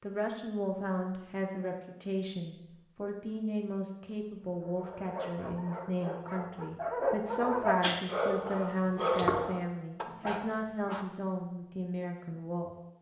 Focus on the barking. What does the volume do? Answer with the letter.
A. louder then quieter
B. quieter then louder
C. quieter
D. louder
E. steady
A.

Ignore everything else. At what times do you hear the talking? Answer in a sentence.
You can hear the talking from 0.0 to 12.8 s.